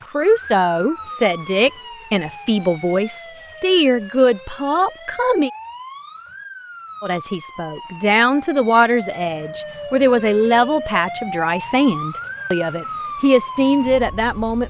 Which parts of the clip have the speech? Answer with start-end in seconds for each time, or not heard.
0.1-5.5, 7.0-14.6.